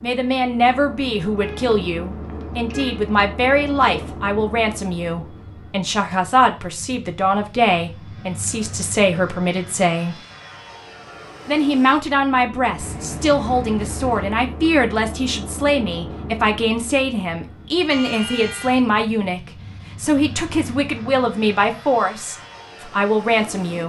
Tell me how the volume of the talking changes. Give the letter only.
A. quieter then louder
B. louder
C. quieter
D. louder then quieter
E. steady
E.